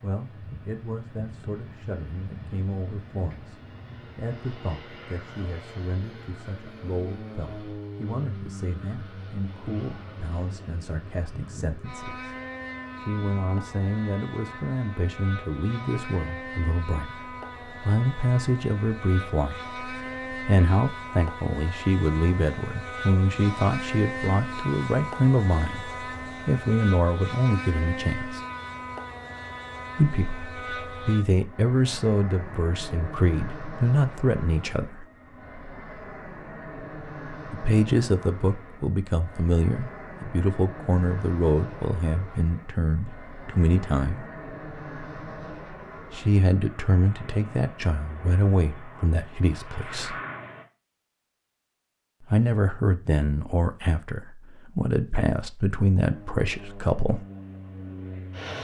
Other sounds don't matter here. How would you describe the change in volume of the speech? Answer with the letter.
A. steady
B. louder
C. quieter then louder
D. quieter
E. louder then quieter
B.